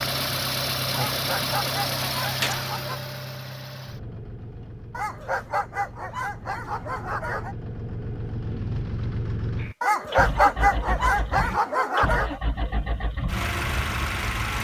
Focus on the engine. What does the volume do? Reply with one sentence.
The loudness of the engine goes down, then up.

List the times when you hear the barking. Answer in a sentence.
The barking can be heard from 1.1 to 3.0 s, from 4.9 to 7.5 s and from 9.8 to 12.4 s.